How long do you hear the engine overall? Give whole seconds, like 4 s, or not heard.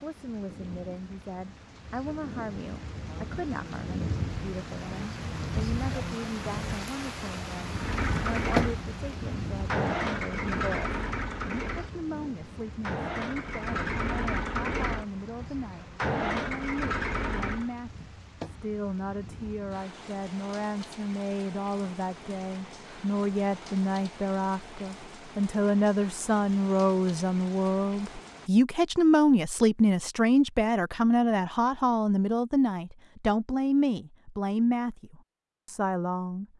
10 s.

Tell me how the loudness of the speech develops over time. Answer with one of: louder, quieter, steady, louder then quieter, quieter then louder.
louder.